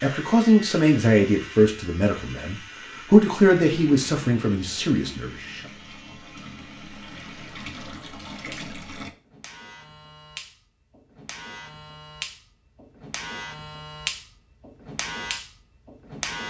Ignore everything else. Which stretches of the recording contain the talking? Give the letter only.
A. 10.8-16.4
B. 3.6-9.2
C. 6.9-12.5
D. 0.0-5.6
D.